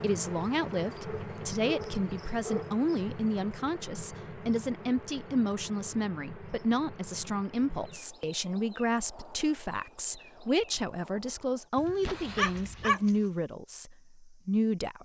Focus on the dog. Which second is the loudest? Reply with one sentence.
The loudest moment of the dog is at 13 seconds.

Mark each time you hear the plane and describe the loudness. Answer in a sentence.
You can't hear the plane here.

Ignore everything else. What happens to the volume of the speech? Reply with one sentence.
The volume of the speech stays about the same.